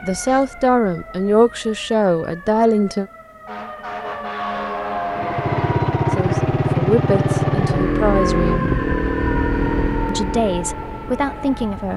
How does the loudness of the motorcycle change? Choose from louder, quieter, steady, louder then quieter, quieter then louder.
quieter.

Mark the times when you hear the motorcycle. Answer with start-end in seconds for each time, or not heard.
5.1-11.9.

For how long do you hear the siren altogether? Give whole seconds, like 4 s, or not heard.
12 s.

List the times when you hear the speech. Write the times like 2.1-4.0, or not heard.
0.0-3.0, 6.2-8.7, 10.1-11.9.